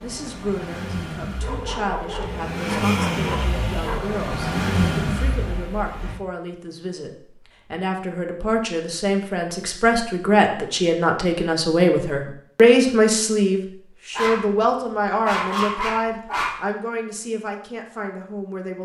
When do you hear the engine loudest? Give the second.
5 s.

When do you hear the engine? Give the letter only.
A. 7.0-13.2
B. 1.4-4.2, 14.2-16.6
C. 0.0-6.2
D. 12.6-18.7
C.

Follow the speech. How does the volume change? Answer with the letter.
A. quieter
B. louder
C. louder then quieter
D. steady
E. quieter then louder
C.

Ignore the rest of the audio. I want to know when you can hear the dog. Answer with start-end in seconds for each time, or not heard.
1.4-4.2, 14.2-16.6.